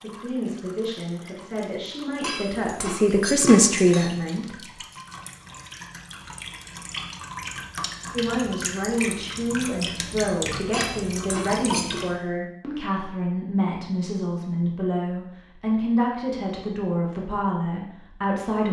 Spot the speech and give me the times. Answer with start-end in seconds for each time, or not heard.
0.0-4.5, 8.1-18.6.